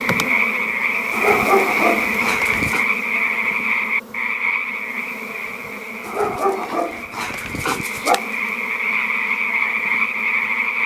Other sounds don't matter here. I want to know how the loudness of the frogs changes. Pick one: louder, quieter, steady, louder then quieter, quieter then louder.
quieter then louder.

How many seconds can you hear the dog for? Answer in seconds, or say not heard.
4 s.